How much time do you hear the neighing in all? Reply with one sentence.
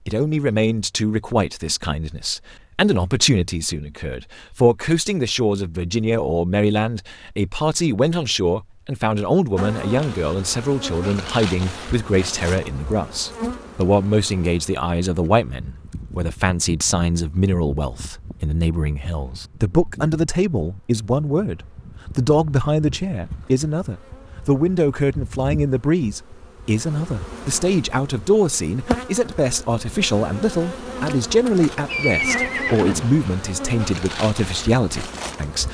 The neighing can be heard for 2 seconds in total.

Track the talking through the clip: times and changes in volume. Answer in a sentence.
You can hear the talking from 0.1 to 35.6 s, at a steady volume.